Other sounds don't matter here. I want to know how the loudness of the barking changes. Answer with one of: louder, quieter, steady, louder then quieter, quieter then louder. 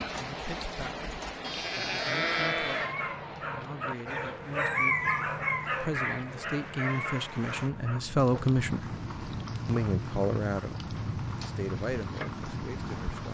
louder then quieter.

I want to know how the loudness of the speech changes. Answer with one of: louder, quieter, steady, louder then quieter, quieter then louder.
louder then quieter.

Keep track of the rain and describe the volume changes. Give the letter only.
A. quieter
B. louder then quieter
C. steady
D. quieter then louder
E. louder
D.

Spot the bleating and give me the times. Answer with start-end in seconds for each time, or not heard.
1.4-3.0.